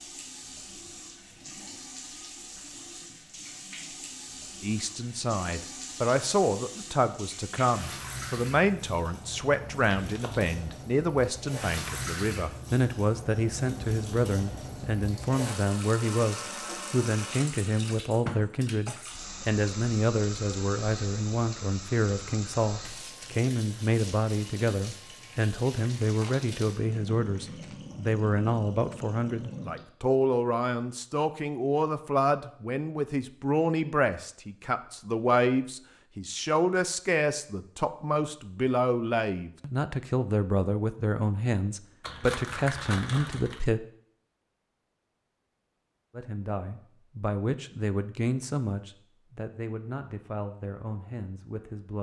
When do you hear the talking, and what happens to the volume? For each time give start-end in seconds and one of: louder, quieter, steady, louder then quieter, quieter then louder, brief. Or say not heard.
4.6-43.8 steady
46.1-51.9 quieter.